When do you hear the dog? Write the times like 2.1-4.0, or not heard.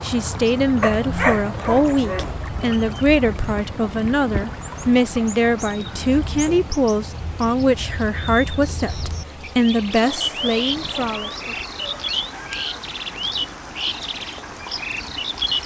0.8-2.4, 10.0-12.8.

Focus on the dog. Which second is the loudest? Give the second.
1 s.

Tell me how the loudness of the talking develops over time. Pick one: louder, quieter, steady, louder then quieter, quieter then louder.
steady.